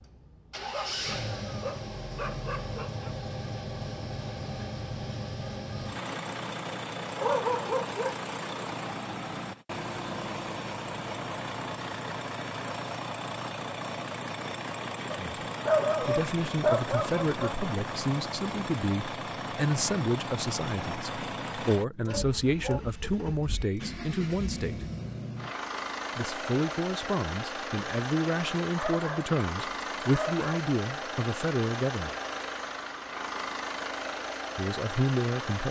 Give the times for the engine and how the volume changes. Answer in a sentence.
The engine can be heard from 0.0 to 35.6 s, at a steady volume.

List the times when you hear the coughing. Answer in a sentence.
You can't hear the coughing here.